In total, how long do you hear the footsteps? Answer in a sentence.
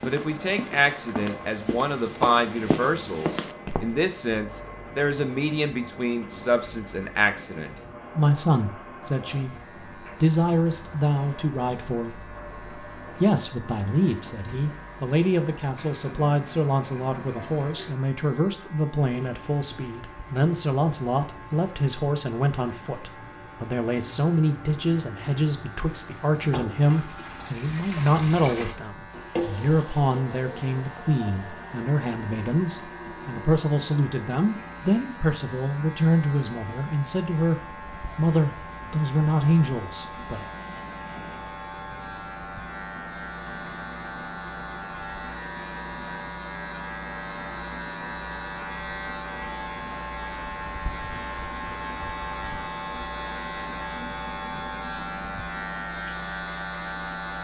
The footsteps can be heard for 4 seconds in total.